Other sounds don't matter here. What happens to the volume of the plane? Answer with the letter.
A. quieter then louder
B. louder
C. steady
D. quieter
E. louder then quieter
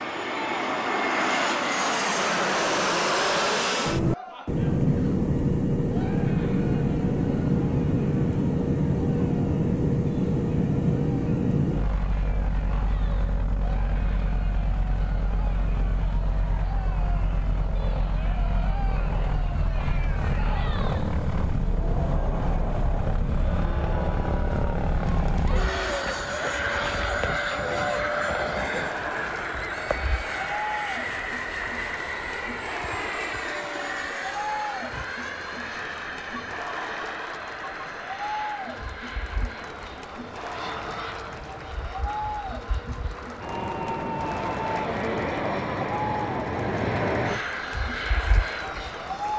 D.